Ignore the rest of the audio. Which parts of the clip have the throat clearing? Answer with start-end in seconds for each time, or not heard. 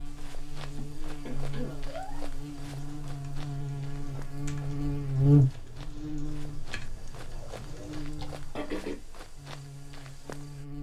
0.7-2.2, 7.2-9.0.